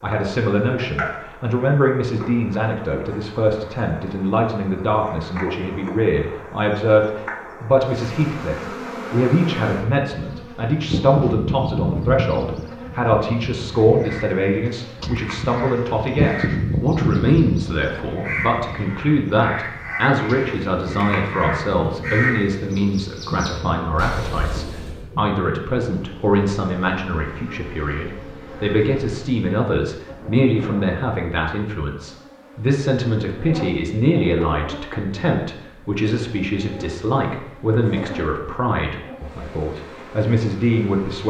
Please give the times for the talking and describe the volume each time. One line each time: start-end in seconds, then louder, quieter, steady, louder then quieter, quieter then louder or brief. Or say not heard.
0.0-41.2 steady.